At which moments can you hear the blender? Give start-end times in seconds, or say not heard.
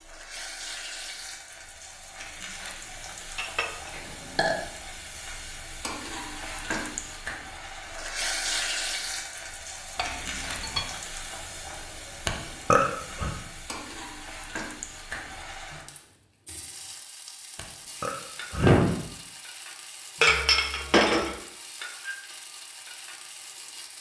not heard.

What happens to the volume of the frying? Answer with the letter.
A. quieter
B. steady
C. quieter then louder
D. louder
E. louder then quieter
E.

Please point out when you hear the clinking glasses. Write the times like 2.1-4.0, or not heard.
3.4-3.9, 9.9-10.8, 20.2-21.4.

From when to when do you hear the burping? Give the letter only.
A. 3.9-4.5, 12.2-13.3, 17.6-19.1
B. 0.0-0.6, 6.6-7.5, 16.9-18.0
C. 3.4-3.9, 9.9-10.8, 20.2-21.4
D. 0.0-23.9
A.